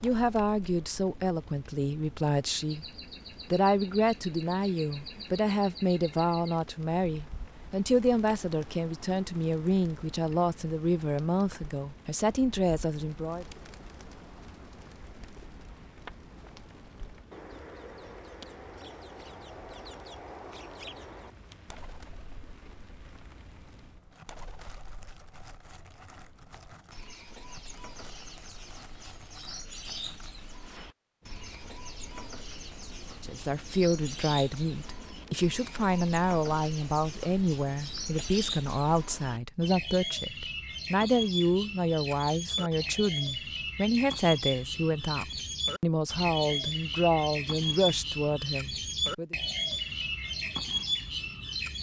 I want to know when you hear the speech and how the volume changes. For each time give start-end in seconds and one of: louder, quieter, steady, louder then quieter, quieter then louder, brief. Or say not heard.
0.0-2.9 brief
3.5-13.4 steady
33.2-49.4 steady.